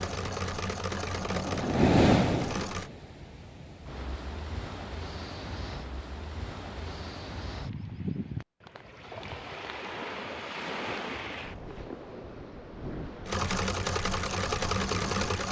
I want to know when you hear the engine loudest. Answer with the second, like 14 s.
15 s.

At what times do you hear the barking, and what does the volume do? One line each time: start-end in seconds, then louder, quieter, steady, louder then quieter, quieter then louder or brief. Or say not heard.
not heard.